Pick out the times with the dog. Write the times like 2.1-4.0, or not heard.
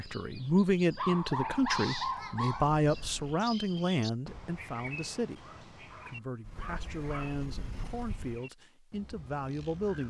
0.9-2.7, 5.4-7.4.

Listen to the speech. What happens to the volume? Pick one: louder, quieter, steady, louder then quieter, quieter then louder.
quieter.